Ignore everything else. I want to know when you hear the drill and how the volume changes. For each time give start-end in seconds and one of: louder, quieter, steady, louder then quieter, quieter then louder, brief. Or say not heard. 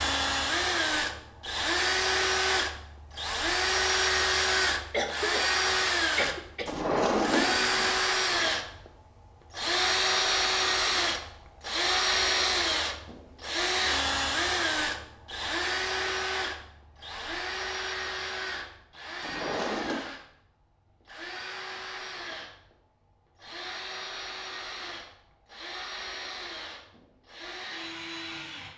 0.0-28.7 quieter.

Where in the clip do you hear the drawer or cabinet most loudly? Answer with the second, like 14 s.
7 s.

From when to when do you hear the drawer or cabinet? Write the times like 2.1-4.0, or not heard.
6.7-8.1, 19.2-20.1.